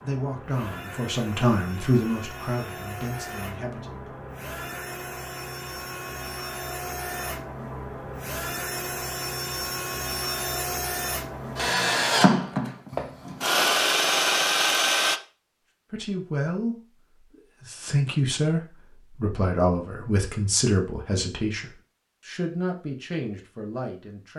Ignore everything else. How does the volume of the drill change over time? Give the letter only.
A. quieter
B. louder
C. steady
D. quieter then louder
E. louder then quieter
B.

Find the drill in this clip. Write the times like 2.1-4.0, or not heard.
0.0-15.2.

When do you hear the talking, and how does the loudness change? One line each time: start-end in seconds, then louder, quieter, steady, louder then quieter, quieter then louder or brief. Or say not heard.
0.0-4.2 louder then quieter
15.9-16.8 brief
17.4-24.3 quieter.